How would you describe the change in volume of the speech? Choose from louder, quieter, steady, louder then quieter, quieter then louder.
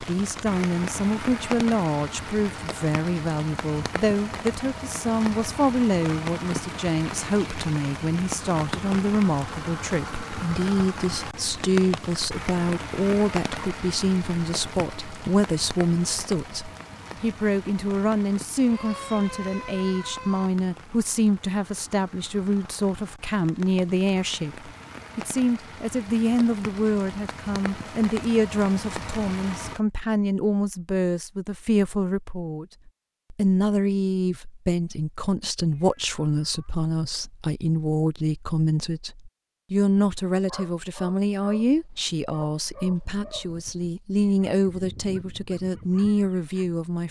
steady.